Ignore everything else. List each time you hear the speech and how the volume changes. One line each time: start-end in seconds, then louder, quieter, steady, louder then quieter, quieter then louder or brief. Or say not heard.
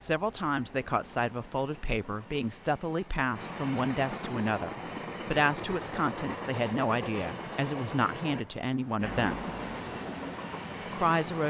0.0-9.4 steady
10.9-11.4 brief.